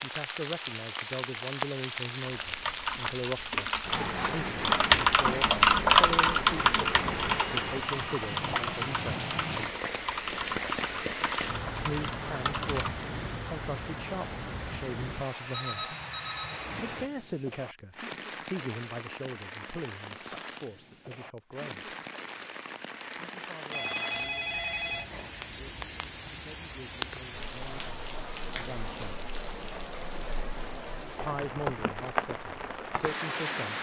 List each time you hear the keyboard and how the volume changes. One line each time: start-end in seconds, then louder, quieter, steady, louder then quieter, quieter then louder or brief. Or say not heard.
2.2-13.1 louder then quieter.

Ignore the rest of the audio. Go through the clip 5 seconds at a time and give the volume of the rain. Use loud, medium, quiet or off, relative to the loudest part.
loud, loud, loud, medium, medium, medium, loud.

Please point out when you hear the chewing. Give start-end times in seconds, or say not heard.
not heard.